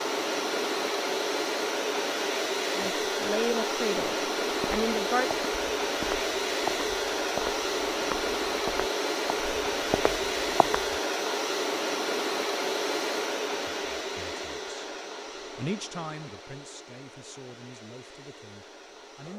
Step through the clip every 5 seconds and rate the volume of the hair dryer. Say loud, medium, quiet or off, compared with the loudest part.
loud, loud, loud, quiet.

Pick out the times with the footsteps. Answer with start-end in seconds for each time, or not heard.
4.5-10.9.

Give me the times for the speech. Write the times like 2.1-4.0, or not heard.
2.8-5.3, 13.5-14.8, 15.6-19.3.